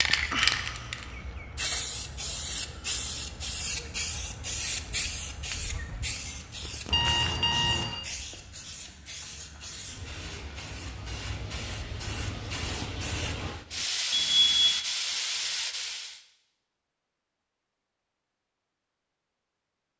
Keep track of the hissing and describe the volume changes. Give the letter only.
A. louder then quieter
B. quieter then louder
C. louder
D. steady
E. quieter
B.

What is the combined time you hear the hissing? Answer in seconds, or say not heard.
16 s.